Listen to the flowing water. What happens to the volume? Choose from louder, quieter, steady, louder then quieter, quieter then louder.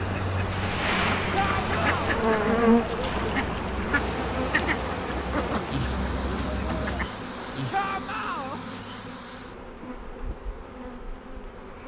quieter.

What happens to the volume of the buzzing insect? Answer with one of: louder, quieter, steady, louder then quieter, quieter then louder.
quieter.